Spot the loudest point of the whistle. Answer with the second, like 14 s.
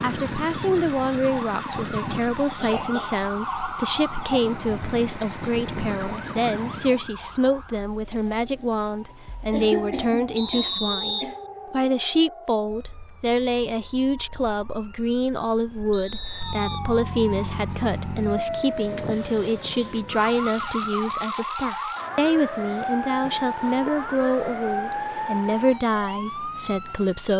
11 s.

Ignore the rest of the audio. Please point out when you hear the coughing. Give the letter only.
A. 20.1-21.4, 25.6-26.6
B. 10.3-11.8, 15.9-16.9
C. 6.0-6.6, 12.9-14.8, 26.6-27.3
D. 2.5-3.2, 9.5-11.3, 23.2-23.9
D.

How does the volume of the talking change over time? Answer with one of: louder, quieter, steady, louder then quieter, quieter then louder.
steady.